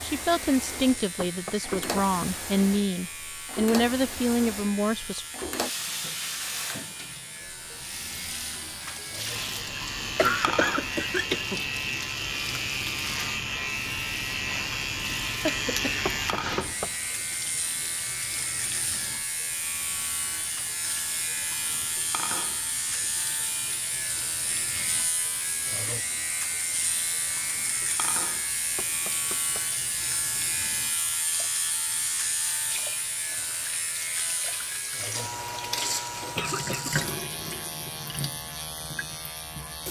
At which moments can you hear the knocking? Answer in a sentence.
The knocking can be heard from 1.1 to 2.1 s, from 16.1 to 16.9 s and from 28.8 to 29.7 s.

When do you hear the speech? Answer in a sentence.
You can hear the speech from 0.0 to 5.2 s.